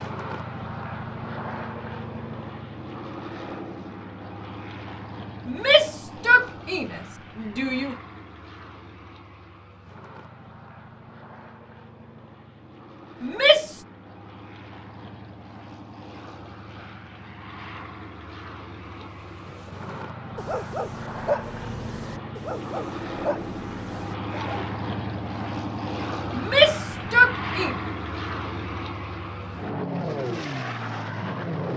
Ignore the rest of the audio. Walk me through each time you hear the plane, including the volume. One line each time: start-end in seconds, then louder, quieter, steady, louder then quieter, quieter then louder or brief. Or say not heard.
0.0-31.7 quieter then louder.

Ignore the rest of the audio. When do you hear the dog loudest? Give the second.
21 s.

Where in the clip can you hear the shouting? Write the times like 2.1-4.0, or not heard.
5.5-8.0, 13.2-13.8, 26.3-27.8.